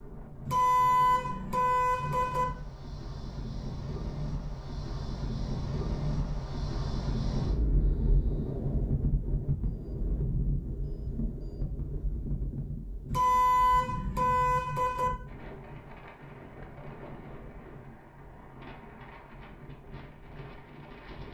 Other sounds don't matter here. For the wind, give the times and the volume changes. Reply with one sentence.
The wind can be heard from 0.0 to 21.2 s, getting louder then quieter.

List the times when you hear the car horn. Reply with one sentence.
You can hear the car horn from 0.5 to 2.5 s and from 13.1 to 15.1 s.